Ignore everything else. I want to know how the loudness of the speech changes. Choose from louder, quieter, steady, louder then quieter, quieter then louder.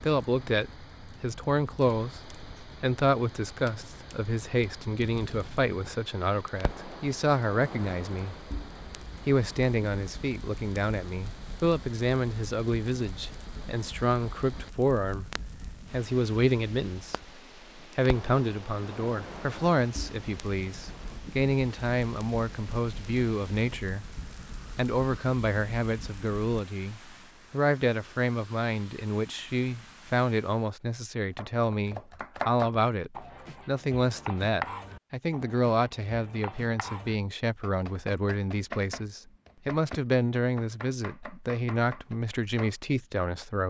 steady.